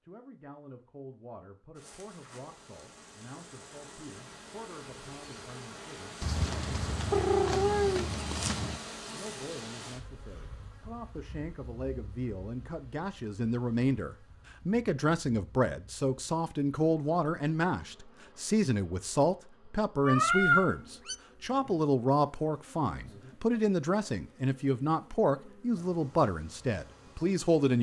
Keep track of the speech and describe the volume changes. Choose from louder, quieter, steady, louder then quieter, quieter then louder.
louder.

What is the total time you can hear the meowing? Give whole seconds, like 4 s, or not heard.
4 s.